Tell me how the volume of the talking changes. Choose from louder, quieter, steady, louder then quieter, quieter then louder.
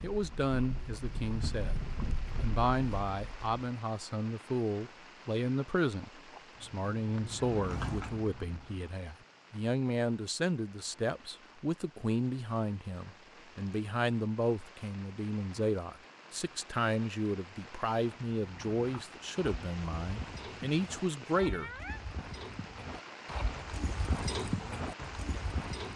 steady.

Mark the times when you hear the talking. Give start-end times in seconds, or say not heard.
0.0-21.7.